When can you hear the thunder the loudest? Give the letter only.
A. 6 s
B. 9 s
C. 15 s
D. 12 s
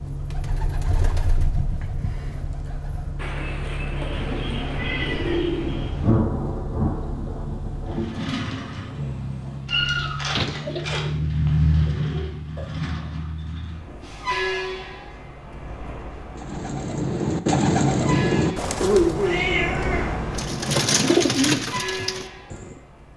A.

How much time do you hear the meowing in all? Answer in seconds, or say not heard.
5 s.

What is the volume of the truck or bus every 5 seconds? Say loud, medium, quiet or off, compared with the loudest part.
medium, medium, loud, medium, medium.